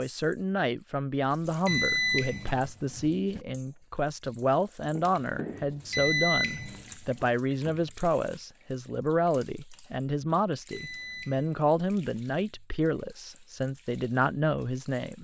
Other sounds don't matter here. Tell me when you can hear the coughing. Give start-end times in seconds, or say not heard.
not heard.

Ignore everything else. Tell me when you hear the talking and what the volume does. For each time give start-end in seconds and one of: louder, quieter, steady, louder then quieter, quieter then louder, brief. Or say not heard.
0.0-15.1 steady.